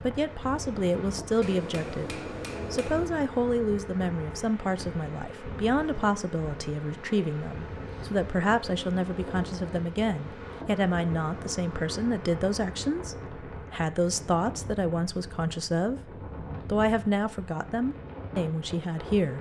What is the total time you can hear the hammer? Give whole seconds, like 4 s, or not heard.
2 s.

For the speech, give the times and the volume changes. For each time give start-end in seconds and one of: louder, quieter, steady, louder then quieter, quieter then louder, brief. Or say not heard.
0.0-16.0 steady
16.6-19.3 brief.